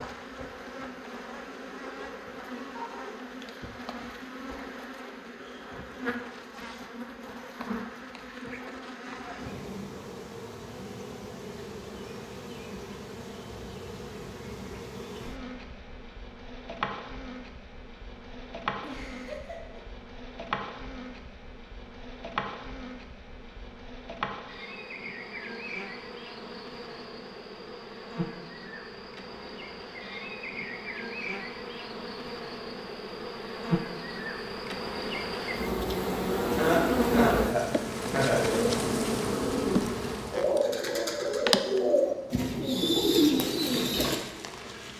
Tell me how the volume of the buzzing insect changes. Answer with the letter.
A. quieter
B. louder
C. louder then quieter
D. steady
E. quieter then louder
B.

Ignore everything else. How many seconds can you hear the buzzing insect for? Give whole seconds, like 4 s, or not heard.
45 s.